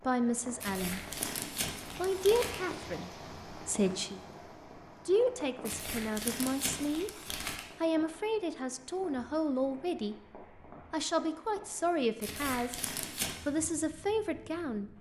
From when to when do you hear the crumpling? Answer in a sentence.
You can hear the crumpling from 0.6 to 2.6 s, from 5.7 to 7.7 s and from 12.2 to 13.3 s.